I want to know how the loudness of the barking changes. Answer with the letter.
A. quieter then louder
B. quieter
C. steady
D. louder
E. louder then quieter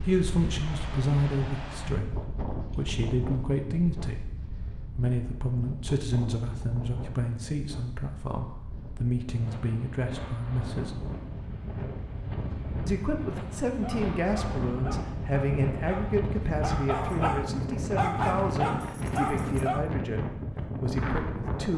D.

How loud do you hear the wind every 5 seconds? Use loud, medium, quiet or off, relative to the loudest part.
medium, medium, loud, loud, loud.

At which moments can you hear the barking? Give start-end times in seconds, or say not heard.
13.7-19.9.